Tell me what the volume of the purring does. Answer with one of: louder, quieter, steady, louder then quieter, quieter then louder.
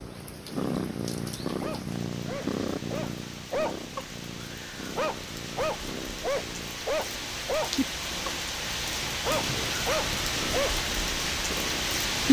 quieter.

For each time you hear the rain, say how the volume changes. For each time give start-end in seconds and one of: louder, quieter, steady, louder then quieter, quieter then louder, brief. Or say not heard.
0.0-12.2 louder.